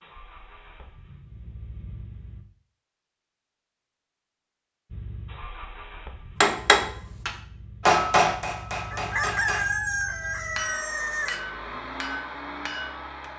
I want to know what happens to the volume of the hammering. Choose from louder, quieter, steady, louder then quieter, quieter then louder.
quieter.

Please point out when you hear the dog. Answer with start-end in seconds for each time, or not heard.
not heard.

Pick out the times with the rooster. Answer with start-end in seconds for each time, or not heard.
8.9-11.4.